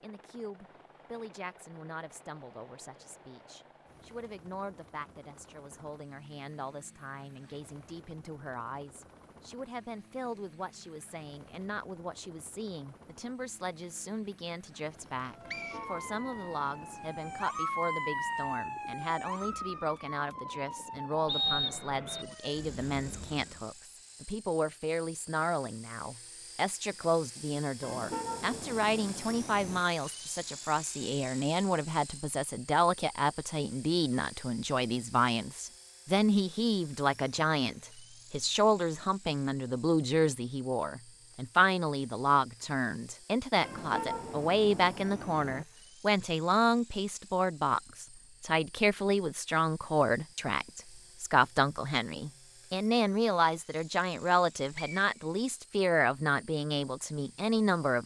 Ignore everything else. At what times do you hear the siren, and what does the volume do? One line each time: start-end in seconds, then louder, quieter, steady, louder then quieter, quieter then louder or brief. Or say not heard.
15.2-23.7 louder then quieter.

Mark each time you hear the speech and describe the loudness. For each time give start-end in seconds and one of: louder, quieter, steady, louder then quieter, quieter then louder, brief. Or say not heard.
0.0-58.0 louder.